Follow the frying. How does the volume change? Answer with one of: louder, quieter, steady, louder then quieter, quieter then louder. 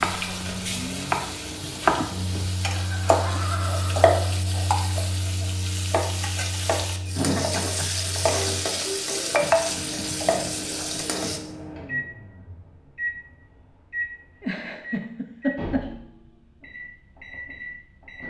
louder.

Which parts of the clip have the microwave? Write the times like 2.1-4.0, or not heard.
0.0-18.2.